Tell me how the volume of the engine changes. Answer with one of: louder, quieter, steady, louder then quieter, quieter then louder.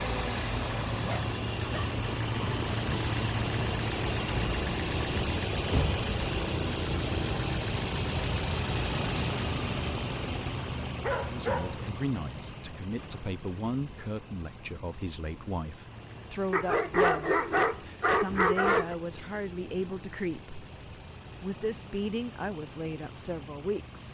quieter.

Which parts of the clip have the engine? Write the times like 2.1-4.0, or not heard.
0.0-24.0.